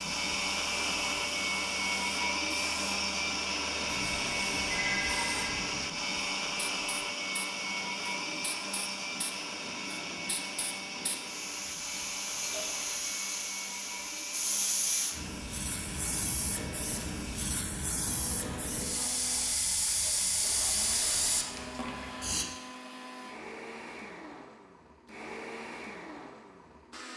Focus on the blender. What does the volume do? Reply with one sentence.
The loudness of the blender goes down.